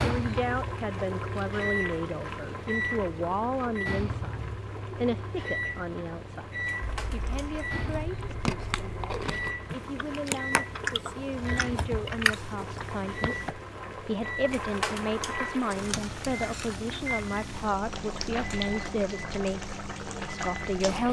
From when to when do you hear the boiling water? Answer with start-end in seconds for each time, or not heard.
0.0-21.0.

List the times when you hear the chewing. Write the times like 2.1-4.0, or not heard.
7.0-13.5.